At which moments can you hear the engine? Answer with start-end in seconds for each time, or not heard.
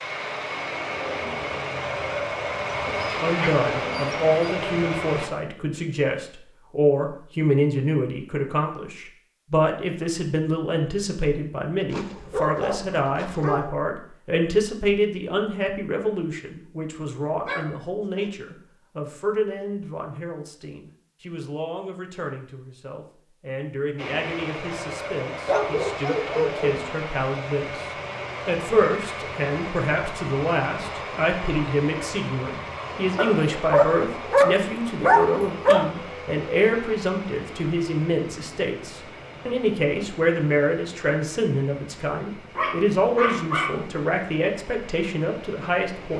0.0-5.3, 23.9-46.1.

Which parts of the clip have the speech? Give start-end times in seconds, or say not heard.
3.1-46.1.